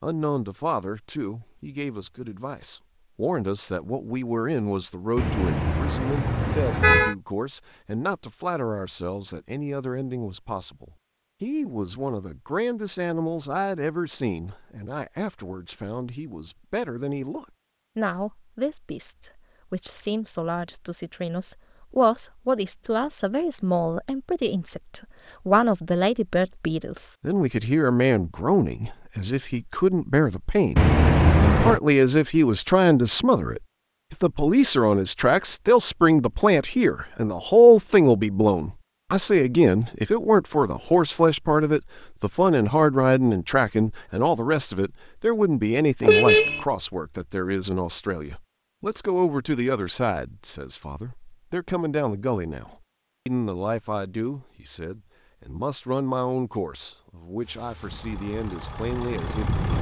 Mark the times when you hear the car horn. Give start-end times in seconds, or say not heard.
5.2-7.2, 30.8-31.8, 46.0-46.6.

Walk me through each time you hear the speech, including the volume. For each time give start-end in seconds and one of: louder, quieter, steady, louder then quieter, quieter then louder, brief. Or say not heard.
0.0-59.7 louder then quieter.